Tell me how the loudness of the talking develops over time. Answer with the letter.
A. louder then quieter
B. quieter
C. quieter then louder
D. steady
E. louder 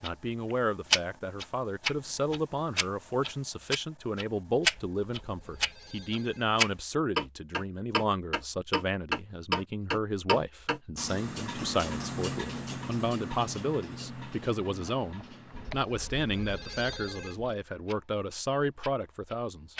D.